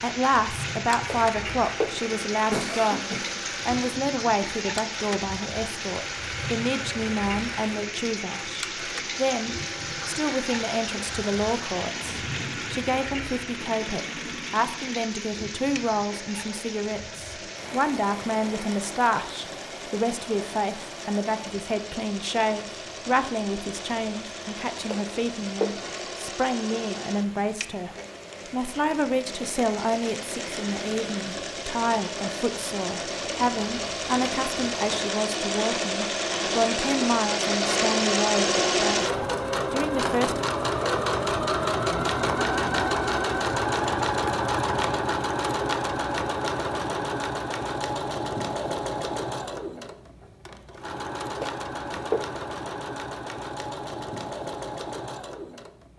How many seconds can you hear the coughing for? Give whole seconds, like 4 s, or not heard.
4 s.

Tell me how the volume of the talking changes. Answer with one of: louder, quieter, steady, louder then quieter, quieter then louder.
steady.